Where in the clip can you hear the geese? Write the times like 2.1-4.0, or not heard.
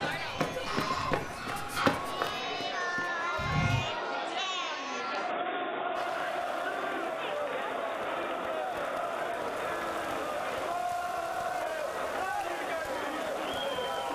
0.7-2.0.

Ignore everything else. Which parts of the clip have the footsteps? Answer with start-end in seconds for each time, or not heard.
0.0-3.9.